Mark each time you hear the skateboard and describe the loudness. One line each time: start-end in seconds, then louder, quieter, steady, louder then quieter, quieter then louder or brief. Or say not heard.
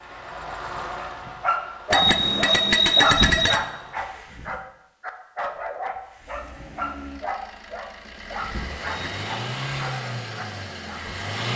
not heard.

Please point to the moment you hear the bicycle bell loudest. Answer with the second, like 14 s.
3 s.